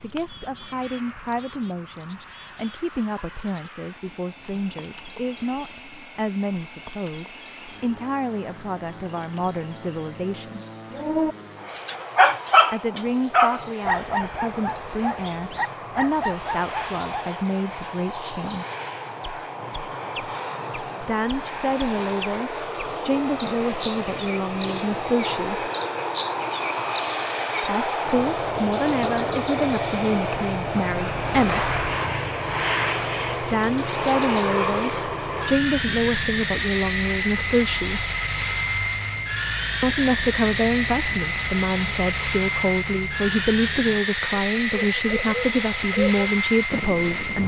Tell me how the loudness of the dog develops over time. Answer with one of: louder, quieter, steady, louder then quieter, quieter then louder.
quieter.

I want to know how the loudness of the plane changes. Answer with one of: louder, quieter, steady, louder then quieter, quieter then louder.
louder.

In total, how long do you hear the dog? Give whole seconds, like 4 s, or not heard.
6 s.